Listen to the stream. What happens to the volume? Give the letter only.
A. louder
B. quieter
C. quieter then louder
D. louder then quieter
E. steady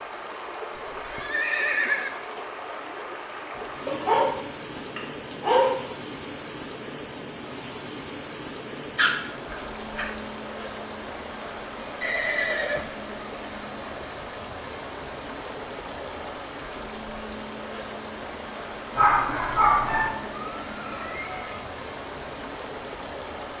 E.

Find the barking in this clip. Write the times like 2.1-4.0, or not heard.
3.9-5.8, 8.8-10.1, 18.9-20.1.